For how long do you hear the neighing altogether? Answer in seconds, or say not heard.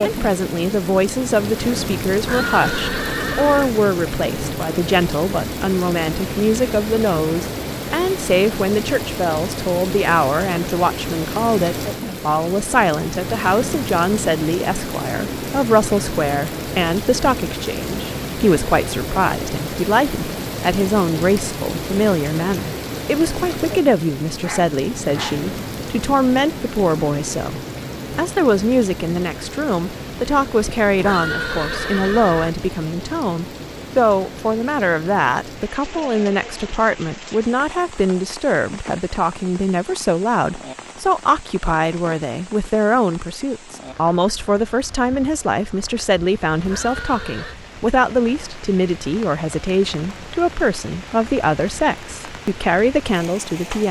4 s.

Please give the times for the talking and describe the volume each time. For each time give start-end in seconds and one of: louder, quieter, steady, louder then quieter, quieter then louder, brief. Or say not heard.
0.0-53.8 steady.